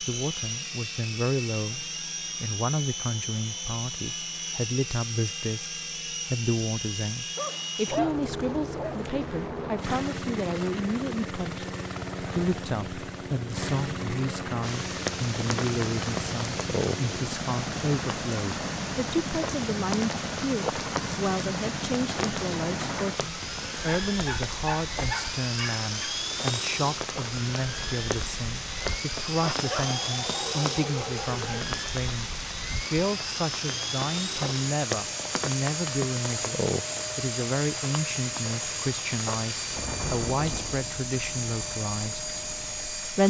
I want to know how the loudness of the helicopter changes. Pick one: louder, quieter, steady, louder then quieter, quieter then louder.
steady.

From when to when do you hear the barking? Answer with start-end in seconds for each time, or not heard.
7.3-9.5, 24.1-26.1, 29.6-31.6.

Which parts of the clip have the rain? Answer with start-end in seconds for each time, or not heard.
14.6-43.2.